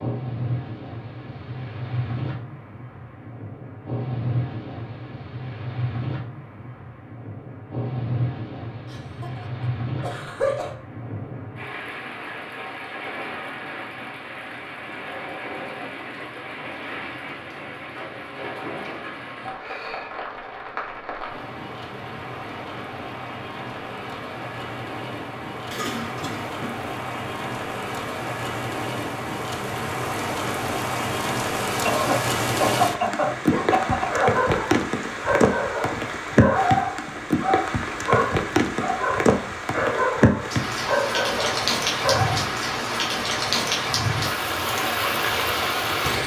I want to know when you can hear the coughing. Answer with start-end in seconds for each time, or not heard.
8.9-10.7, 25.7-26.9, 31.9-34.4.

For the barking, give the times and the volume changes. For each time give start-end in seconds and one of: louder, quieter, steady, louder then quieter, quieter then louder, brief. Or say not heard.
33.5-42.4 steady.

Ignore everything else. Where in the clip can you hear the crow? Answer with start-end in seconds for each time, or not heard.
not heard.